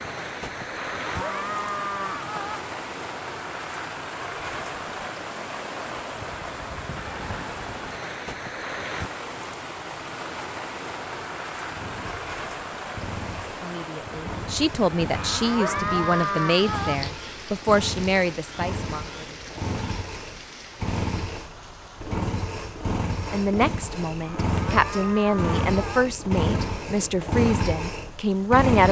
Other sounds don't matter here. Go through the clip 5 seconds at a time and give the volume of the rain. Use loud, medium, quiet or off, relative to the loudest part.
loud, loud, loud, medium, medium, quiet.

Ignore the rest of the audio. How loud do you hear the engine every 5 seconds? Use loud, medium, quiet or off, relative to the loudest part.
off, off, medium, medium, loud, loud.